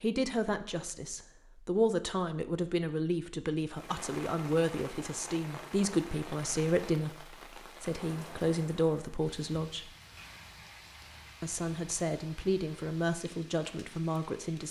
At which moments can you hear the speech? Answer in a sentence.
The speech can be heard from 0.0 to 9.9 s and from 11.4 to 14.6 s.